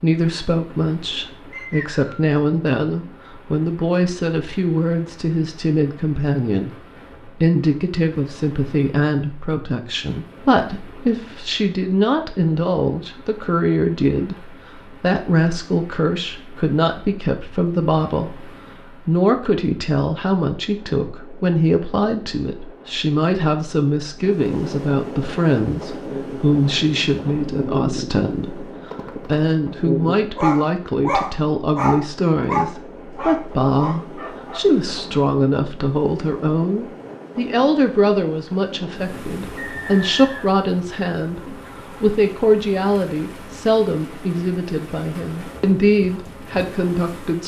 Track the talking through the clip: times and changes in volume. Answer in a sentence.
The talking can be heard from 0.0 to 47.4 s, at a steady volume.